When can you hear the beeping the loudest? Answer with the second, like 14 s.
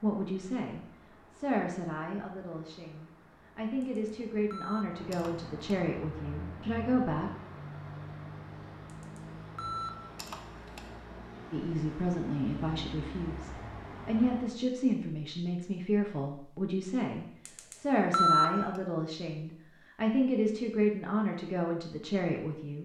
18 s.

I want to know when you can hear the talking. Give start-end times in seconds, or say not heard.
0.0-7.3, 11.5-22.8.